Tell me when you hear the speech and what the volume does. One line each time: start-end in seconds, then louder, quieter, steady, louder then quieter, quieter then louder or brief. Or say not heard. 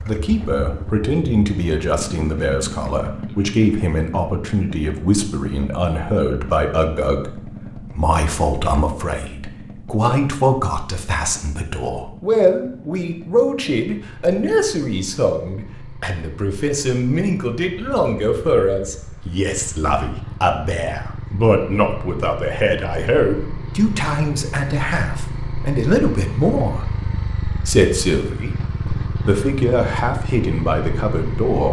0.0-31.6 steady.